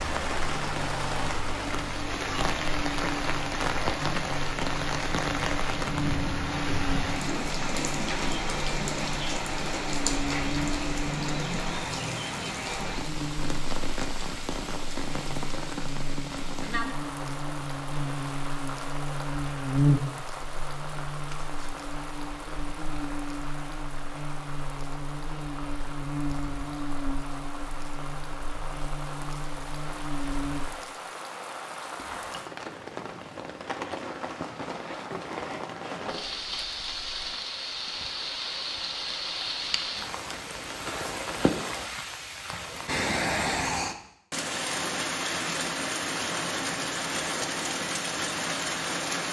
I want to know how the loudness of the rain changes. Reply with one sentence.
The loudness of the rain goes down, then up.